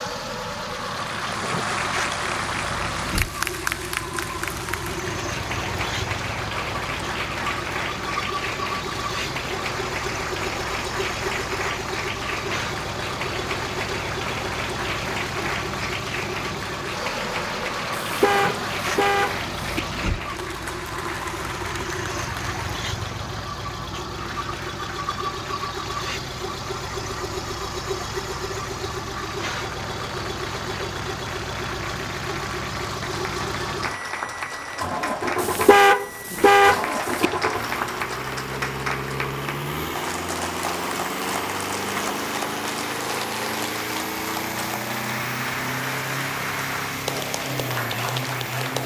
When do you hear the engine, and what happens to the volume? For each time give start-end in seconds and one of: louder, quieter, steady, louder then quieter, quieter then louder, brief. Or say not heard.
0.0-48.8 steady.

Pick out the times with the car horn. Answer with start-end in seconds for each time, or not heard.
17.9-19.8, 35.4-37.3.